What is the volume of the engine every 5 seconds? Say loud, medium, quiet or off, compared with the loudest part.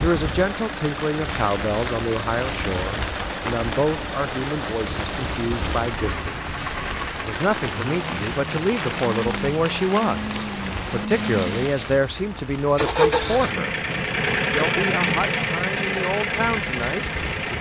medium, medium, loud, loud.